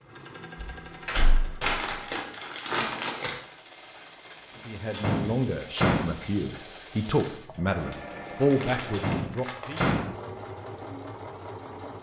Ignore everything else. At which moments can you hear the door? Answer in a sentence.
You can hear the door from 0.6 to 1.8 s, from 4.9 to 6.1 s and from 8.9 to 10.1 s.